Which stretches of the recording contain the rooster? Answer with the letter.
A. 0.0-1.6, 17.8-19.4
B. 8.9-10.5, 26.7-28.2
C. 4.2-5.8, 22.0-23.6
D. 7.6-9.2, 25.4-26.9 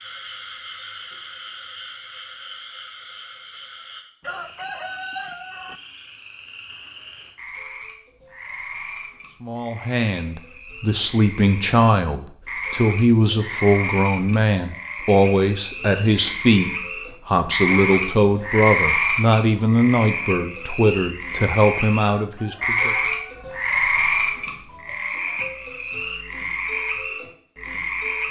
C.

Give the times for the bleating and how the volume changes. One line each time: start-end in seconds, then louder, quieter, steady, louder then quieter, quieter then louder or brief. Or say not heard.
not heard.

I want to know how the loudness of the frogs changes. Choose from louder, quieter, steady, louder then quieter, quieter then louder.
louder.